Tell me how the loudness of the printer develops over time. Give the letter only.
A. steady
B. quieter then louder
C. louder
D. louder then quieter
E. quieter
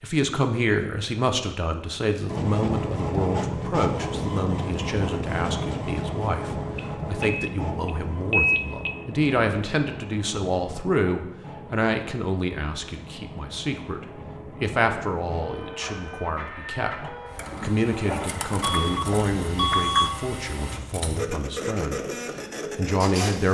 B.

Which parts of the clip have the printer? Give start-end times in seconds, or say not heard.
2.2-23.4.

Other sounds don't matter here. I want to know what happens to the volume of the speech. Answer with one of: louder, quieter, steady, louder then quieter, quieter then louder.
steady.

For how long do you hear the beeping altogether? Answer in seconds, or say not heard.
4 s.